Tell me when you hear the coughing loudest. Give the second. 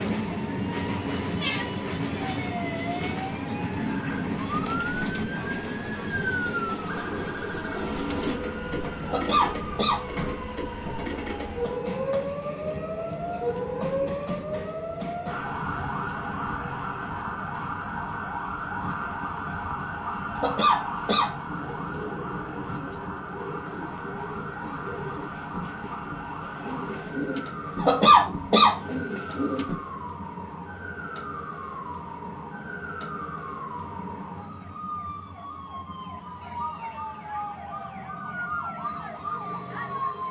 28 s.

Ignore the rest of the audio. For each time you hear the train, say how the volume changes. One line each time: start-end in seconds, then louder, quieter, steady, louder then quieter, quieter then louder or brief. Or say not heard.
0.0-40.2 quieter.